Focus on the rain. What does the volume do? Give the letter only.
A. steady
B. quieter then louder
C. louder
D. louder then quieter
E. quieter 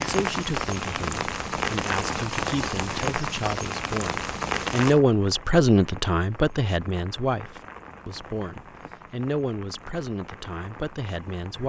E.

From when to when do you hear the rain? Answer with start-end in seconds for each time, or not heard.
0.0-11.6.